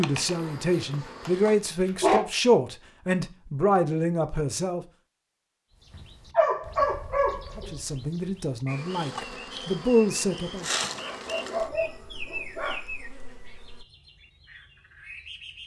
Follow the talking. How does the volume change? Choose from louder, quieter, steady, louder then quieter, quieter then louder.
quieter then louder.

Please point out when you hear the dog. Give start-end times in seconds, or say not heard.
0.5-2.2, 5.9-7.8, 10.9-12.8.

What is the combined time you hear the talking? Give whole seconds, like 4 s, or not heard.
8 s.